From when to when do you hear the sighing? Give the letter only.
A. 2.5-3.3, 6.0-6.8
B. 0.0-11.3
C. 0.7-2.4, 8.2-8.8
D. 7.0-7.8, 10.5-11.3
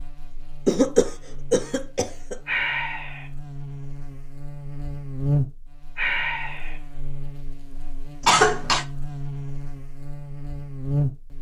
A.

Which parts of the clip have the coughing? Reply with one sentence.
You can hear the coughing from 0.7 to 2.4 s and from 8.2 to 8.8 s.